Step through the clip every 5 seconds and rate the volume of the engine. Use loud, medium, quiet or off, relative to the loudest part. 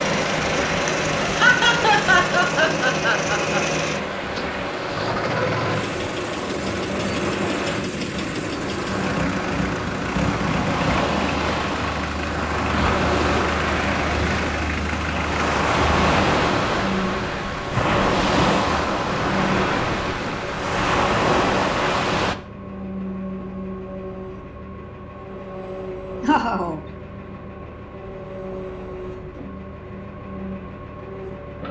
loud, loud, loud, loud, medium, medium, medium.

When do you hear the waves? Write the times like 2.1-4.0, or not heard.
0.0-22.4.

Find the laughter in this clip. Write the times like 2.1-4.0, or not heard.
1.2-3.6, 26.2-26.8.